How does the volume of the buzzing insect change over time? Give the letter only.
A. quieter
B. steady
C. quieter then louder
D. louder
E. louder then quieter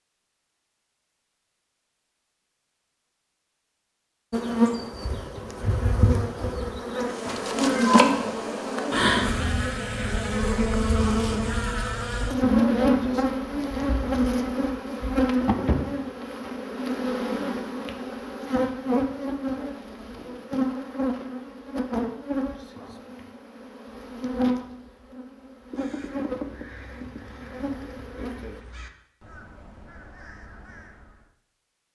A.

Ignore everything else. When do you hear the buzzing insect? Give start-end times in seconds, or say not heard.
4.3-28.6.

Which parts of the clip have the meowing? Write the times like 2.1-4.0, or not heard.
7.2-8.4.